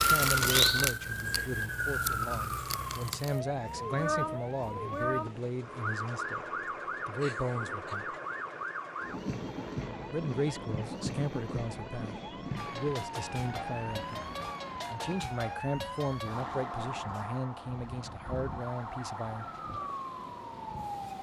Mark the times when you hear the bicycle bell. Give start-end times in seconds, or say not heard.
not heard.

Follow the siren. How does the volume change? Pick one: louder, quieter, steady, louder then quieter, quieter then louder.
quieter.